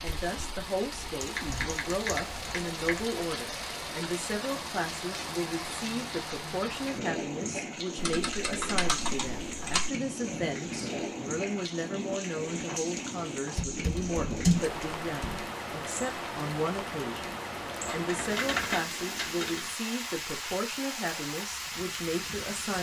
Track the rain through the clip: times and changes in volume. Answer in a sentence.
The rain can be heard from 0.0 to 22.7 s, at a steady volume.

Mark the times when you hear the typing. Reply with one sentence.
The typing can be heard from 1.2 to 3.1 s, from 8.0 to 9.9 s, from 13.6 to 15.4 s and from 17.9 to 19.7 s.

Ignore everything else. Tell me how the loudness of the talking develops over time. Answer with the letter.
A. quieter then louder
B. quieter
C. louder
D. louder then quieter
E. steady
E.